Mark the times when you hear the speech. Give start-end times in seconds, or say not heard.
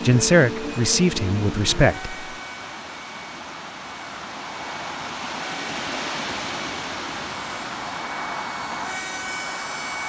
0.0-2.1.